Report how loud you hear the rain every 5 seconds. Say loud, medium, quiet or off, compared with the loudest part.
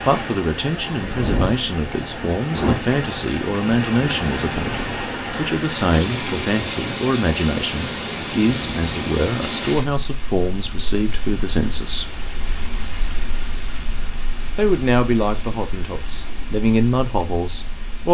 loud, loud, medium, quiet.